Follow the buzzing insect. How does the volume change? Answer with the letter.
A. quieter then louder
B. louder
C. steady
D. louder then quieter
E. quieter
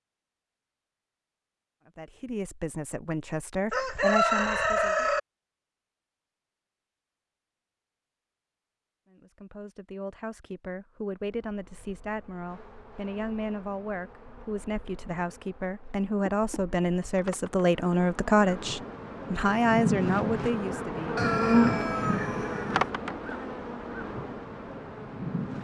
D.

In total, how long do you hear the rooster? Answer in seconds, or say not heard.
3 s.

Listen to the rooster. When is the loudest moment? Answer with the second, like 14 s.
4 s.